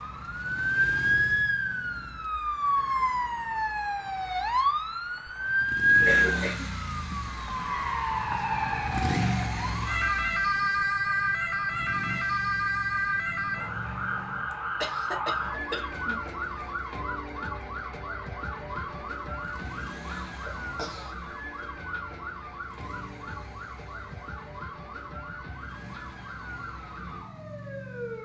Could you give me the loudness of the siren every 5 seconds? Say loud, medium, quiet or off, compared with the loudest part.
loud, loud, loud, medium, quiet, quiet.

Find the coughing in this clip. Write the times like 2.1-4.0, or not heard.
6.0-6.7, 14.8-16.2, 20.4-21.1.